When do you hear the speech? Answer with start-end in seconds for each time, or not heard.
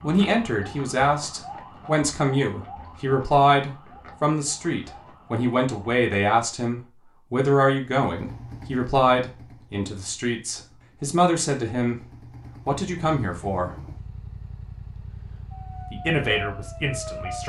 0.0-12.0, 12.7-13.7, 15.9-17.4.